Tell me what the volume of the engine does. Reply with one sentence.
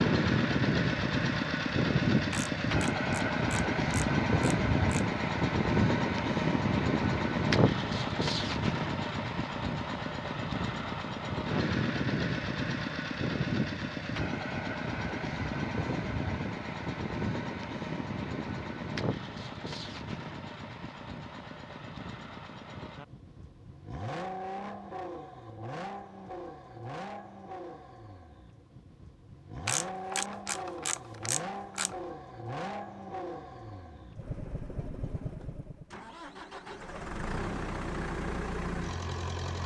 The volume of the engine goes down.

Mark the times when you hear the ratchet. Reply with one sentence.
The ratchet can be heard from 2.3 to 5.0 s and from 29.6 to 31.9 s.